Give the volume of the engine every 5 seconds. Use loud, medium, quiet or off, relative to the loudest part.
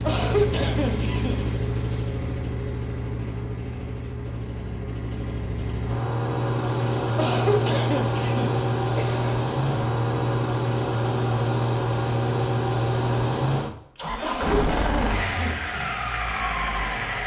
medium, loud, loud, loud.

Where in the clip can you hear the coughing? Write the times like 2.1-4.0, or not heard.
0.1-1.4, 7.2-9.3, 14.2-15.6.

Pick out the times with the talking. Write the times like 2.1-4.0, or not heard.
not heard.